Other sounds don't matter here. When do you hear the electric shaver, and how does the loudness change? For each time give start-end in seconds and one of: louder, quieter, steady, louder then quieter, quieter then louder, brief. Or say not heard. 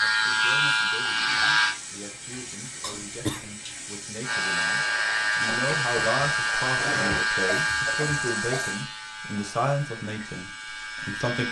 0.0-1.8 brief
4.2-11.4 quieter.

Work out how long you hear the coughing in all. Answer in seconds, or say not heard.
3 s.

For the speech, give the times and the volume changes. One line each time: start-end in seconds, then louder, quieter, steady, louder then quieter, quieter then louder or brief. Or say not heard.
0.0-11.4 louder.